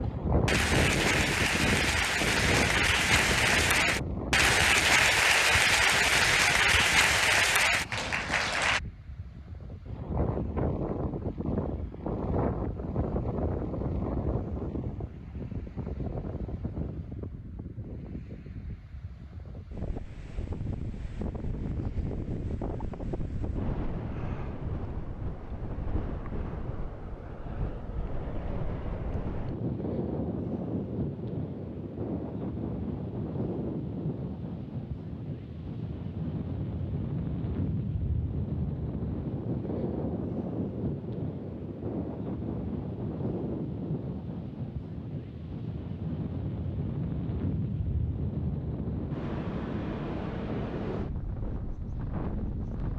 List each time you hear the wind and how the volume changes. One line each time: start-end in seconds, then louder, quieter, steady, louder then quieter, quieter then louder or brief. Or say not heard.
0.0-52.9 steady.